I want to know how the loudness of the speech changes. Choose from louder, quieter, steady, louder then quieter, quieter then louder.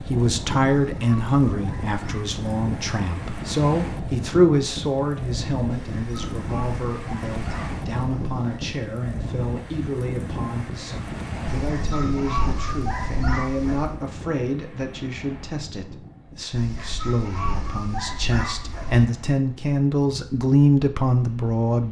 quieter then louder.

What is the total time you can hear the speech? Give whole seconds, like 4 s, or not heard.
22 s.